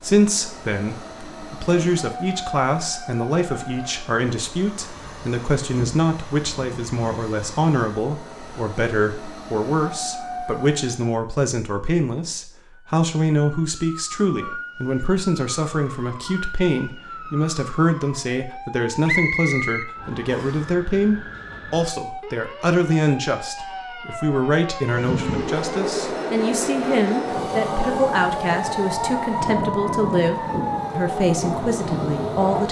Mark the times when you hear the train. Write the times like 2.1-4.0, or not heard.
0.0-11.0, 24.8-32.6.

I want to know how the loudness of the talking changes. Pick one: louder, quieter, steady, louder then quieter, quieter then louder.
steady.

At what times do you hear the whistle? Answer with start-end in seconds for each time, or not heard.
19.1-20.6.